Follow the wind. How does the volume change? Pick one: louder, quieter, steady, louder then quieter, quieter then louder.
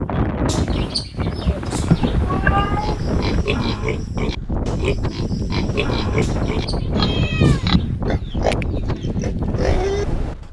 steady.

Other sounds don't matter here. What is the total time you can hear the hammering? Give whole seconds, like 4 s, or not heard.
not heard.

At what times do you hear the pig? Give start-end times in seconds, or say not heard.
2.5-10.4.